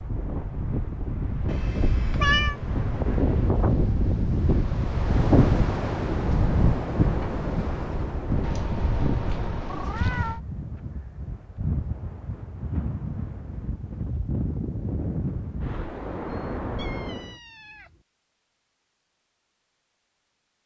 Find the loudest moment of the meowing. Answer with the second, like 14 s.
2 s.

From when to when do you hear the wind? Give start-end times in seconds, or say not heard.
0.0-17.4.